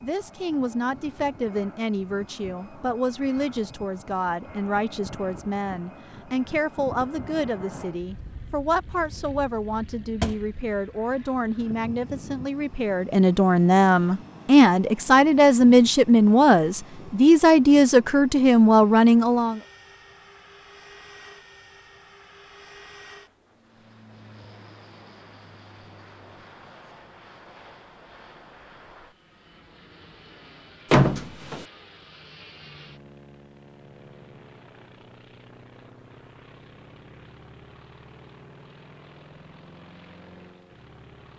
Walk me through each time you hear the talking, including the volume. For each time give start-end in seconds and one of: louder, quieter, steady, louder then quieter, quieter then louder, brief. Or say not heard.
0.0-19.6 louder.